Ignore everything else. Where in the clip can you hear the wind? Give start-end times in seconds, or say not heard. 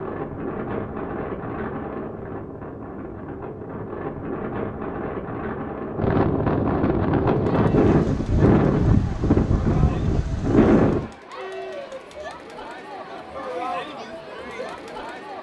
0.0-11.1.